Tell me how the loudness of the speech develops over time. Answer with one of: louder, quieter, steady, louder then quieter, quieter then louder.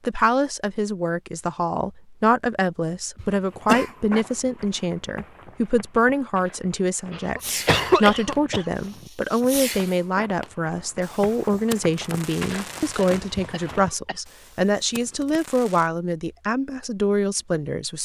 steady.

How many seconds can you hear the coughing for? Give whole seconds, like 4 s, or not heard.
4 s.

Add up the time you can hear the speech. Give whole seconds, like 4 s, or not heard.
18 s.